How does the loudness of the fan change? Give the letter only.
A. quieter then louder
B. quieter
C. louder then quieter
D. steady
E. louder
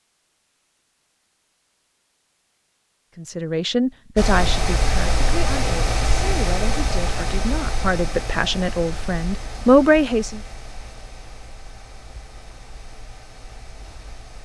B.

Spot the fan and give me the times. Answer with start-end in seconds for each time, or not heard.
4.2-14.4.